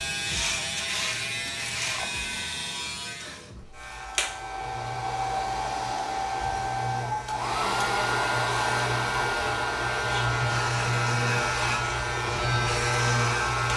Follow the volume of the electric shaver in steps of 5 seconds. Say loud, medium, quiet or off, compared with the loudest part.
medium, medium, loud.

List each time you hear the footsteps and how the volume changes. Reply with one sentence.
The footsteps can't be heard in this clip.